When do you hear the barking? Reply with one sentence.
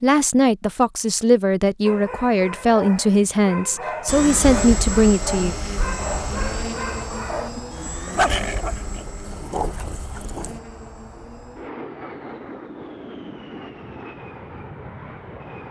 The barking can be heard from 1.9 to 10.6 s.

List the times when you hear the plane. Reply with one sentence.
The plane can be heard from 4.0 to 15.6 s.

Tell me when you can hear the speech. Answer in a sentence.
You can hear the speech from 0.0 to 5.5 s.